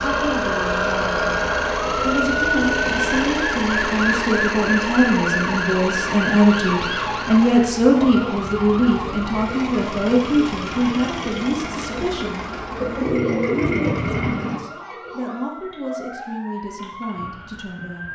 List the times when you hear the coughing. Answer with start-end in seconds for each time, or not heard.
not heard.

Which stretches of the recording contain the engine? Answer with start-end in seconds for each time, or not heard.
0.0-14.6.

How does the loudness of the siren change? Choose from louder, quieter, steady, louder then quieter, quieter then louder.
quieter.